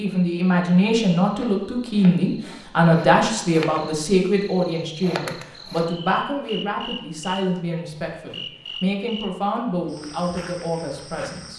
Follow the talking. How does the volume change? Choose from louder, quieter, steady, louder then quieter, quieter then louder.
quieter.